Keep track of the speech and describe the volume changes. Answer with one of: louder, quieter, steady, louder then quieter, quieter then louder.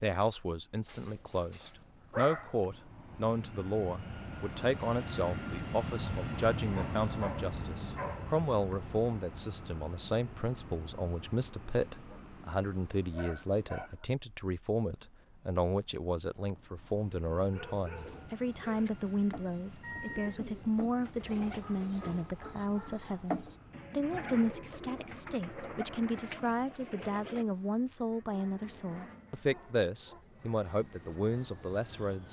steady.